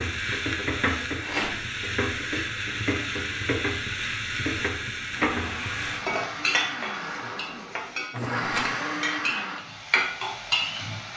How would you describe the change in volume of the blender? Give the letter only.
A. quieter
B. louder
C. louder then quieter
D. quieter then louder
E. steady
B.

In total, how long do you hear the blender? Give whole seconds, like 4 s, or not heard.
5 s.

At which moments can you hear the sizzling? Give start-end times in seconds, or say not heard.
0.0-11.1.